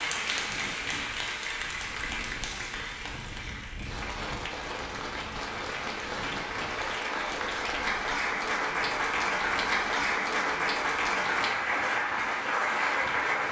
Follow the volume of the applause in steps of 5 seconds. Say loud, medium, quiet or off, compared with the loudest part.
medium, loud, loud.